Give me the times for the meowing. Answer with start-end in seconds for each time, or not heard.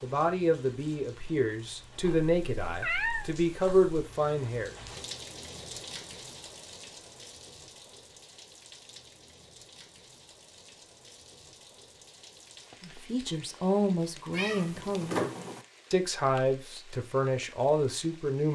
2.0-3.9, 14.3-15.7.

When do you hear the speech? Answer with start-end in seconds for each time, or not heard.
0.0-4.8, 12.8-15.2, 15.9-18.4.